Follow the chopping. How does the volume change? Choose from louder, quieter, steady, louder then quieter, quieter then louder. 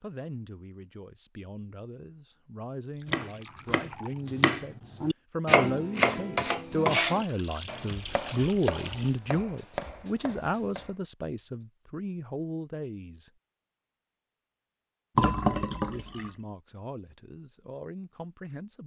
louder then quieter.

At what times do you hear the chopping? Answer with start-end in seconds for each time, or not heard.
3.0-10.9.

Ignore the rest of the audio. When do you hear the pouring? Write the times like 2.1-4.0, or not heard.
2.9-4.2, 7.1-9.1, 15.2-16.3.